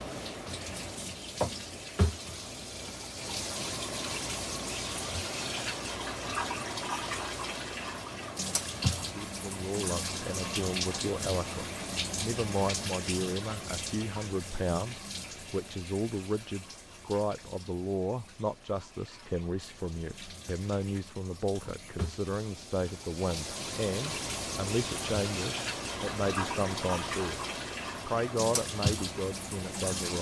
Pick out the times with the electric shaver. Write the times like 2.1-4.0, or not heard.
not heard.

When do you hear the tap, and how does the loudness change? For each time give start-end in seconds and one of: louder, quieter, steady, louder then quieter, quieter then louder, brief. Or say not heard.
0.0-30.1 quieter then louder.